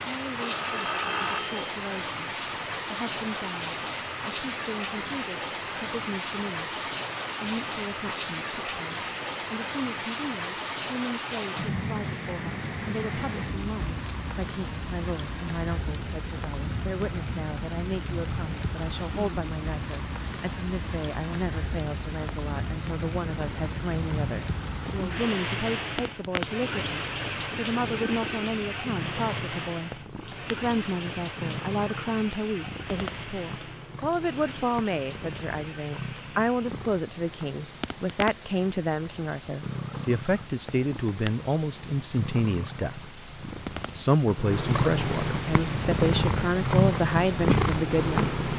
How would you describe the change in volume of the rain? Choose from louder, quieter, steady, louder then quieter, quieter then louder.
quieter.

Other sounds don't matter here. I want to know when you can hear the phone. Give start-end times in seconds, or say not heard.
0.4-1.6.